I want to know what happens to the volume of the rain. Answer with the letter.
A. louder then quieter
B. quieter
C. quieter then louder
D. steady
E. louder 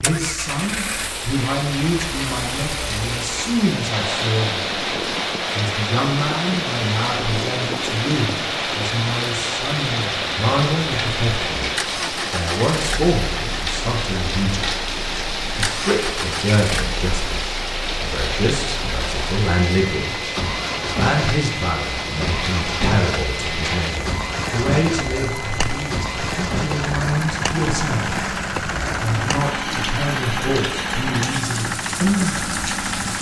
D.